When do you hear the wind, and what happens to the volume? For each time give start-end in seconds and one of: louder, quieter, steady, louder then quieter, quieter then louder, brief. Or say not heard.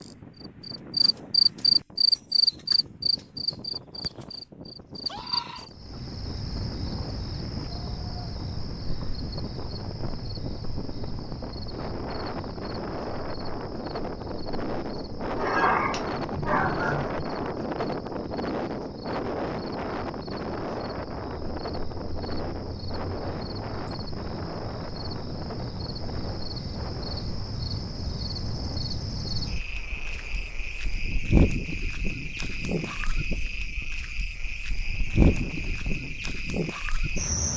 0.0-37.2 louder then quieter.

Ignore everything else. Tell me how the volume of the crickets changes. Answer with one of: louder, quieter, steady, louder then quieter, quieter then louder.
quieter then louder.